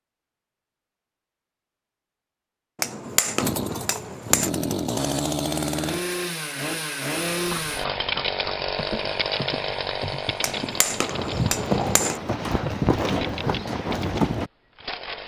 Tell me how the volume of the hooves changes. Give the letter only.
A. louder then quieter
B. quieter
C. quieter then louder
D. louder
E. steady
D.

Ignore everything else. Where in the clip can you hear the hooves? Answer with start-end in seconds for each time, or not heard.
7.5-14.5.